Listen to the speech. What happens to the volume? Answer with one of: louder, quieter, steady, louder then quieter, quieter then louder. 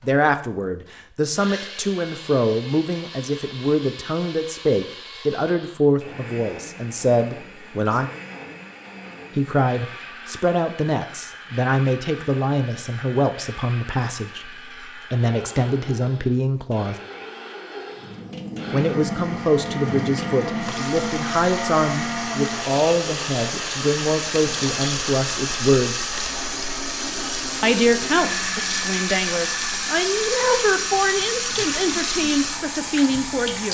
steady.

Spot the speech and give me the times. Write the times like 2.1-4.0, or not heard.
0.0-8.1, 9.3-16.9, 18.7-25.9, 27.6-33.7.